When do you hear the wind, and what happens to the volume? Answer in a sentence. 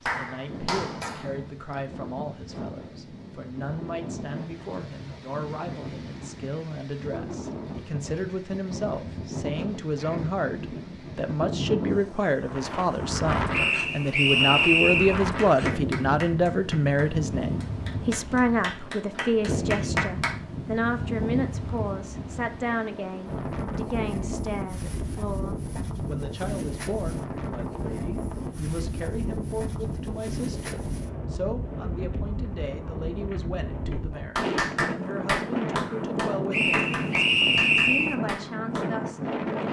The wind can be heard from 0.0 to 39.6 s, getting louder.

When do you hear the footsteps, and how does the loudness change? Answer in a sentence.
You can't hear the footsteps here.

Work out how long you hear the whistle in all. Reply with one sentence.
The whistle can be heard for 3 seconds in total.